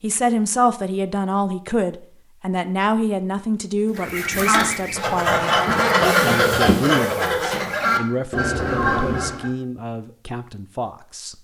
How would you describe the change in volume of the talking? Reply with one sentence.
The volume of the talking goes down.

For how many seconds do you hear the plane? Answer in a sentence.
You can't hear the plane here.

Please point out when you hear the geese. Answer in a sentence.
The geese can be heard from 4.0 to 9.5 s.